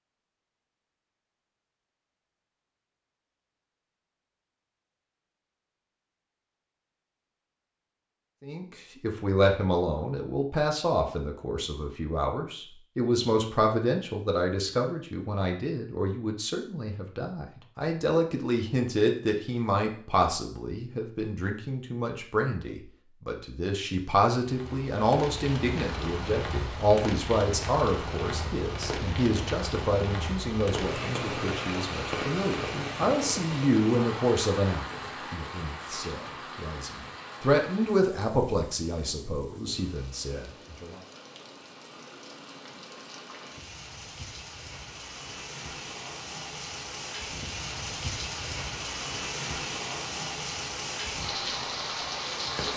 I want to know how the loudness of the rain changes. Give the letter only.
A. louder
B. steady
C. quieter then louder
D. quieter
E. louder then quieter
C.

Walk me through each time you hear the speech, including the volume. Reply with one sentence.
The speech can be heard from 8.4 to 41.0 s, at a steady volume.